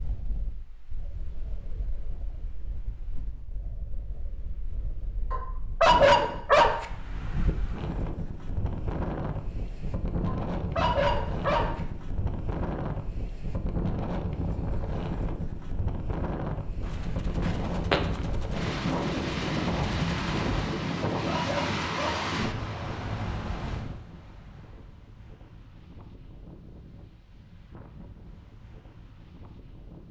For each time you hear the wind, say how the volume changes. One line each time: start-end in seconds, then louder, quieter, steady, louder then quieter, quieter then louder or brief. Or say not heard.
0.0-30.0 louder then quieter.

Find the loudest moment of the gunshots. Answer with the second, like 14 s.
18 s.